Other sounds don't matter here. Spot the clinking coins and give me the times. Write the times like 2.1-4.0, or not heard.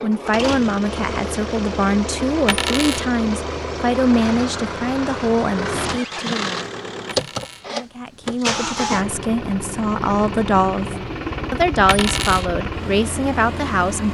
2.5-3.0, 7.0-7.7, 11.8-12.5.